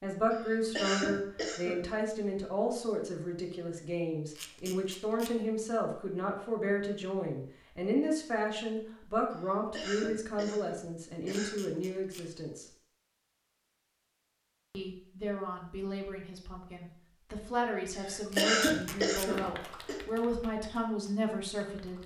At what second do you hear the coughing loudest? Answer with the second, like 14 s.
19 s.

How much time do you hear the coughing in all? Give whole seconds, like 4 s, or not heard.
6 s.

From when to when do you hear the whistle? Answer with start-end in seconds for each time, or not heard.
not heard.